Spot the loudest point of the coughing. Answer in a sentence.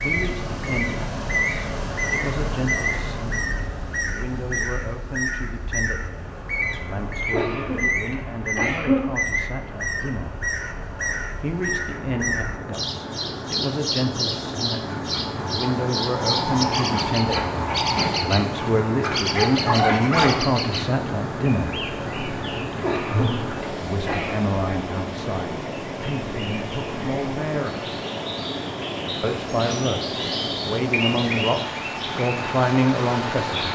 The loudest moment of the coughing is at 9 seconds.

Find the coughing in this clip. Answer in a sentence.
The coughing can be heard from 7.2 to 9.0 s and from 22.7 to 24.4 s.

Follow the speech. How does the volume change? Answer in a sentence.
The volume of the speech goes up.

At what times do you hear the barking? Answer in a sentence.
The barking can be heard from 14.8 to 20.4 s.